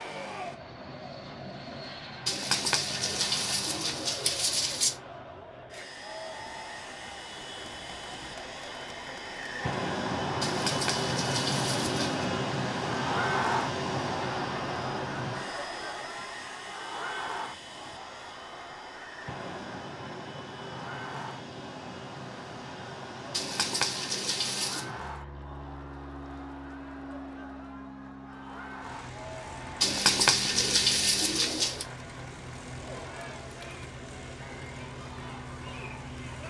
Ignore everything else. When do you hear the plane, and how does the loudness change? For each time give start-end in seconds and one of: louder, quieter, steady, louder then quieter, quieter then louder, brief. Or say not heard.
0.0-36.4 louder then quieter.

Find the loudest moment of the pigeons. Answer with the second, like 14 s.
30 s.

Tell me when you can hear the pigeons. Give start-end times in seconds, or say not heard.
2.2-5.0, 10.4-12.3, 23.3-24.9, 29.8-31.9.